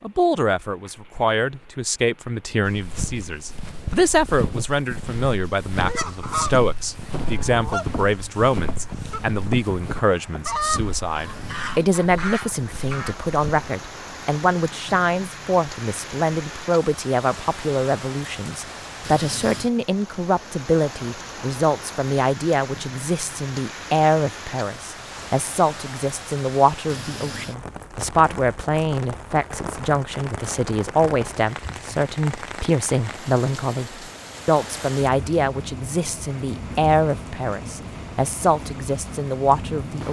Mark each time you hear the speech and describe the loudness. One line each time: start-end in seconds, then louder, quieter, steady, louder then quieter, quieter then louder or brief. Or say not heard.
0.0-40.0 steady.